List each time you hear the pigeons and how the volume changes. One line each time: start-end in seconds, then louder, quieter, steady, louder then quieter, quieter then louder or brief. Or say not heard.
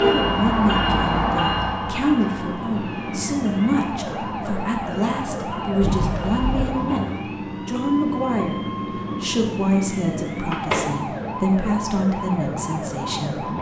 not heard.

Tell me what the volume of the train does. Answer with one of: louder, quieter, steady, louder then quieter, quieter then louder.
quieter.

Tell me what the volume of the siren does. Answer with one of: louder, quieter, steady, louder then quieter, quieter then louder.
steady.